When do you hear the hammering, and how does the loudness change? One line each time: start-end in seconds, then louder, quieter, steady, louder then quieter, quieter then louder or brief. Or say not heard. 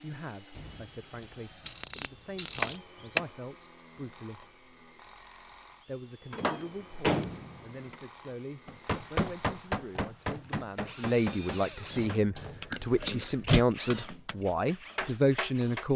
8.7-15.8 quieter then louder.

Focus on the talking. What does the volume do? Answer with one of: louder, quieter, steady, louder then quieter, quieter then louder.
louder.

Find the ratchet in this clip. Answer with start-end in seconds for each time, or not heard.
0.6-2.8.